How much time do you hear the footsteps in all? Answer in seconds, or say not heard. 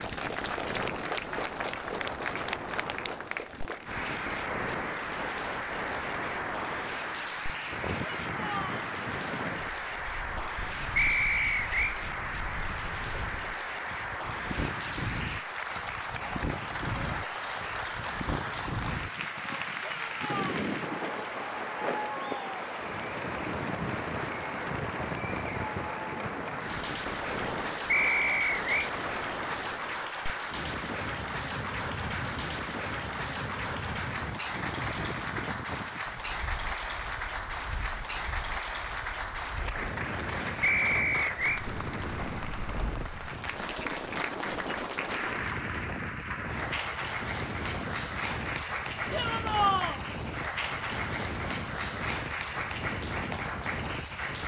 not heard.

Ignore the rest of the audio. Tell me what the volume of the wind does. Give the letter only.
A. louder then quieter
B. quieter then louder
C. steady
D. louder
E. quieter
C.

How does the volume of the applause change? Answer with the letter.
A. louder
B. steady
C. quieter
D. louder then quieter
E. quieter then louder
B.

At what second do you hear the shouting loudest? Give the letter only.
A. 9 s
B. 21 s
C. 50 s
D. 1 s
C.